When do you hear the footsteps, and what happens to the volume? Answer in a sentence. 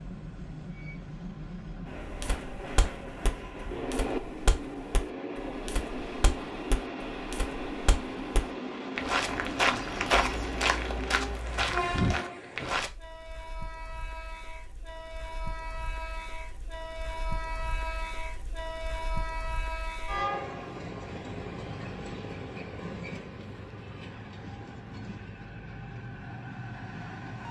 You can hear the footsteps from 2.0 to 12.9 s, getting louder.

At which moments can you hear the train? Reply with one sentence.
The train can be heard from 0.0 to 27.4 s.